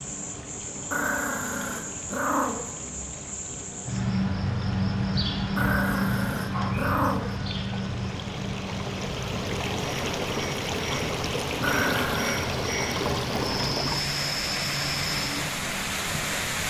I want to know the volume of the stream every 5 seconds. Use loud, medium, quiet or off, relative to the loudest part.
quiet, medium, loud, loud.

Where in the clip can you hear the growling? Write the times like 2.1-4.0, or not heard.
0.9-2.7, 5.5-7.3, 11.6-12.4.